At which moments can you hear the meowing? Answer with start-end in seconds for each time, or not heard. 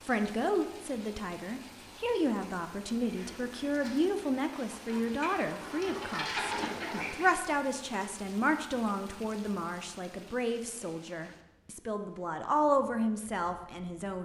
not heard.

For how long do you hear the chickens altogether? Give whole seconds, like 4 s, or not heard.
4 s.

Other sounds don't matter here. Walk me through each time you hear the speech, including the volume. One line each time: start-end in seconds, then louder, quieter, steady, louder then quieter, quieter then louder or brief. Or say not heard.
0.1-14.1 steady.